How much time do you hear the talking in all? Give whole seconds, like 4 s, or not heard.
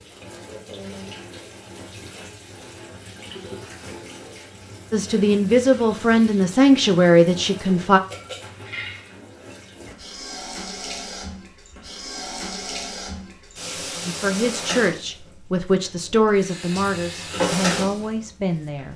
8 s.